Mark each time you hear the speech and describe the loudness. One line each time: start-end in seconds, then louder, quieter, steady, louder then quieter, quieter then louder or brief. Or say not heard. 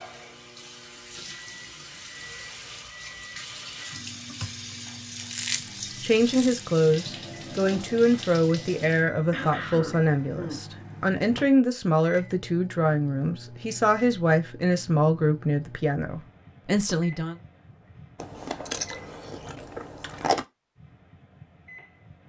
6.0-17.4 steady.